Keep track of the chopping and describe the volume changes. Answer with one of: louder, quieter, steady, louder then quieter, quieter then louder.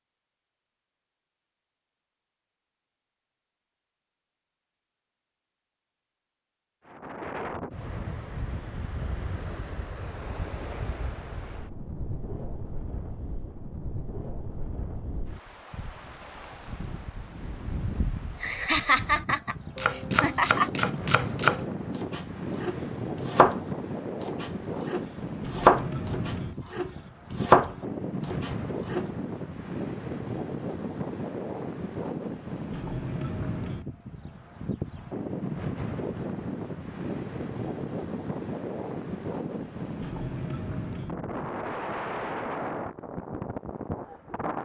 quieter then louder.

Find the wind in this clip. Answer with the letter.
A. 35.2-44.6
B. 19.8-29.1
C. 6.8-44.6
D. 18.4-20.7
C.